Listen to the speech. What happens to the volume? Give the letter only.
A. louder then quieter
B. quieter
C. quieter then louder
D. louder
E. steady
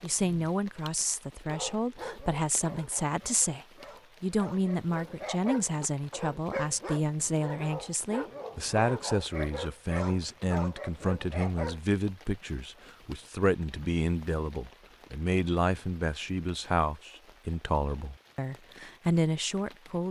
E.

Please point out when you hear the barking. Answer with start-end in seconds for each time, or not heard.
1.4-11.8.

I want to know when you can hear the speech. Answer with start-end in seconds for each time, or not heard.
0.0-20.0.